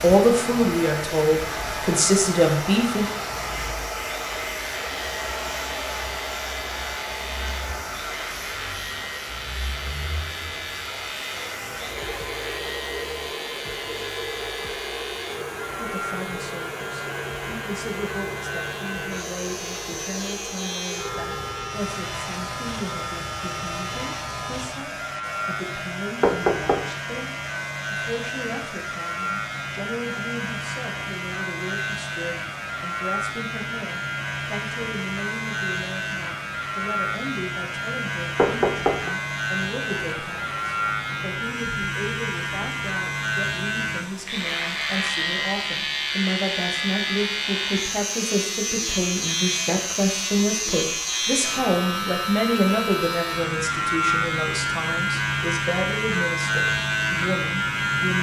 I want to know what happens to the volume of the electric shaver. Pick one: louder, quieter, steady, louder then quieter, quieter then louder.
louder.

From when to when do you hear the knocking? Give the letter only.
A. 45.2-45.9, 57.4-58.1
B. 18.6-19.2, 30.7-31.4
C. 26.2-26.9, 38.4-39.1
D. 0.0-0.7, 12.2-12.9
C.